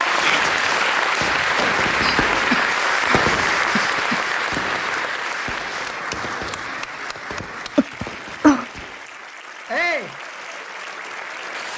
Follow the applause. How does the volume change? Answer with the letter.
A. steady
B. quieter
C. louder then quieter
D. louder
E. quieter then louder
B.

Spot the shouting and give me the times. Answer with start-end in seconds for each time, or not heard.
0.1-0.5, 9.7-10.2.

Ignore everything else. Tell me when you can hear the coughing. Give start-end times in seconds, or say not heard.
2.0-4.2, 7.4-8.7.